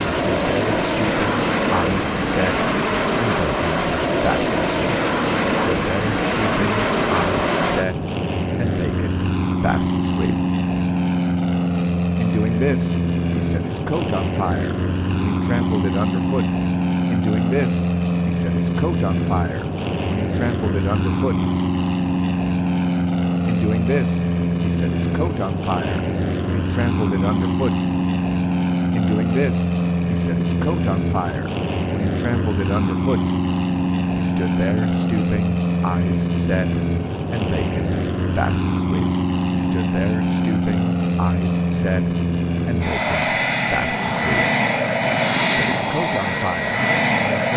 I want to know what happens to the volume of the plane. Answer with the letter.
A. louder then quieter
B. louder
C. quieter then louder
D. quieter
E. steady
E.